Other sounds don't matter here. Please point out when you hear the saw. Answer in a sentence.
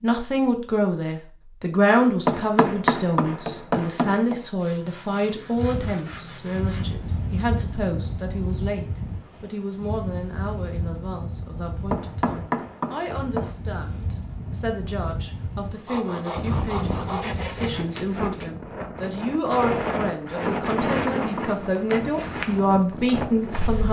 The saw can be heard from 4.5 to 7.0 s and from 15.8 to 17.9 s.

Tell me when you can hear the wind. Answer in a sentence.
You can hear the wind from 5.5 to 23.8 s.